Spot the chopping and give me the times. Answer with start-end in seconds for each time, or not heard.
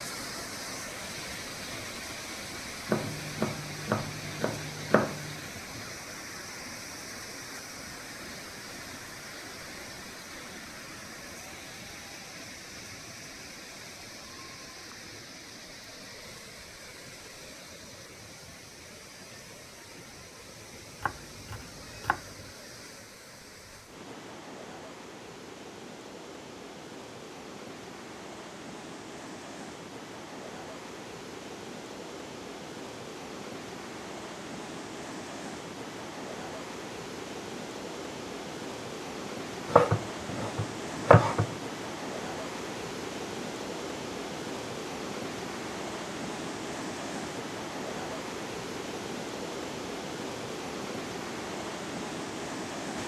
2.9-5.4, 21.0-22.5, 39.6-41.5.